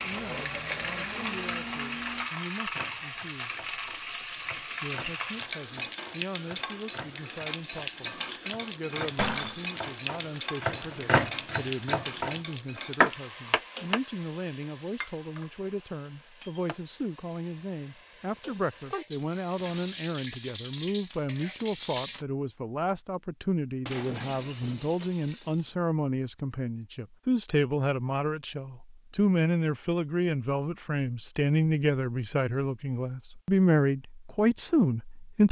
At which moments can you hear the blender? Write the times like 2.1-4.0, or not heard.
0.0-2.3.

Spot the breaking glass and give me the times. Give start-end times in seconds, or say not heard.
9.2-9.8, 16.4-16.9, 23.9-25.7.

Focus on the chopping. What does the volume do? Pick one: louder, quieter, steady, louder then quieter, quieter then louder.
louder.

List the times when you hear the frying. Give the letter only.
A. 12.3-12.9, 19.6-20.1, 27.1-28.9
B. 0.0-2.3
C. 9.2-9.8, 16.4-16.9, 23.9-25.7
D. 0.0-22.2
D.